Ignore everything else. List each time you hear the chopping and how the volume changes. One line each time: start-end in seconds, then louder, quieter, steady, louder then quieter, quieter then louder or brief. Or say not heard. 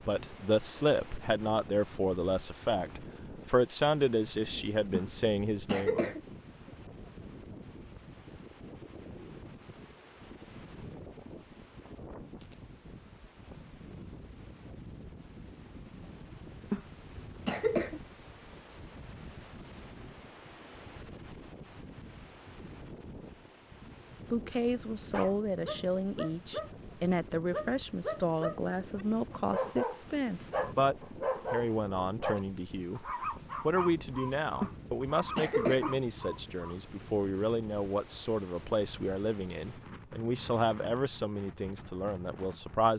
not heard.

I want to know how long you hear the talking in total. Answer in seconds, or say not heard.
25 s.